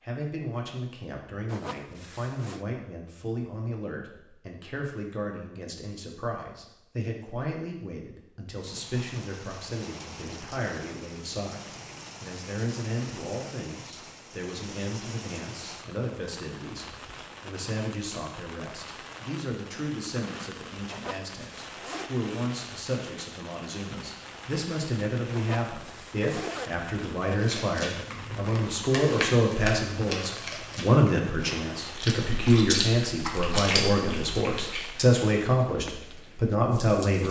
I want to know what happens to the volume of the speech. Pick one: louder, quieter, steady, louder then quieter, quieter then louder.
louder.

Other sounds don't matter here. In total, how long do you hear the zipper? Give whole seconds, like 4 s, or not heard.
4 s.